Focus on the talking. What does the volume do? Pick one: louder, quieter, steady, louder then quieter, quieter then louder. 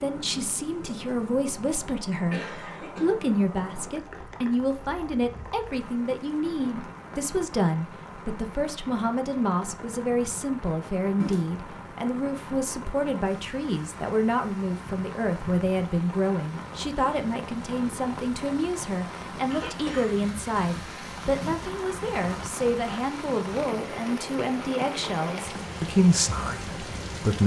steady.